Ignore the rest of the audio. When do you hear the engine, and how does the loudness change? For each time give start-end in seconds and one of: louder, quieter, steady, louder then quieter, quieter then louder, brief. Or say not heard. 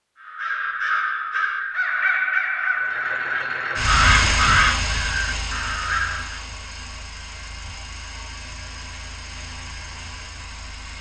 2.7-10.9 quieter.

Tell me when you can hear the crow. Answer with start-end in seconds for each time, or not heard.
0.2-6.4.